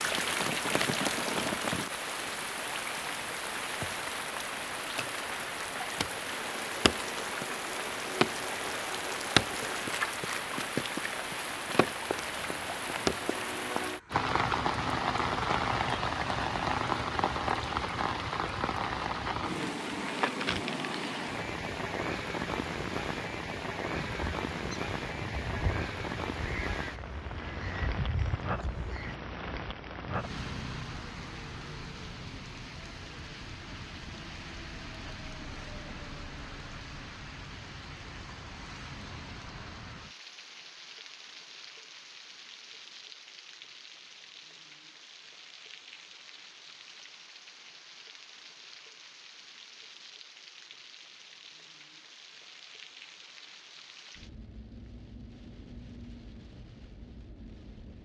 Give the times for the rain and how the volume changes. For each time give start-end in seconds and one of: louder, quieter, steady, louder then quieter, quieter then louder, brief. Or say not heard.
0.0-57.9 quieter.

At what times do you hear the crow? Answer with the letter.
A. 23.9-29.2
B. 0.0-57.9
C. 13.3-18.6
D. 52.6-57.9
A.